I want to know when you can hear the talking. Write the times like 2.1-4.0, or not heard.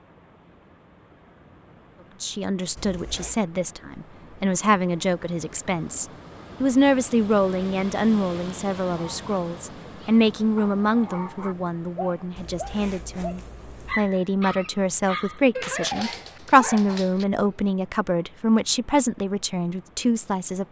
2.2-20.6.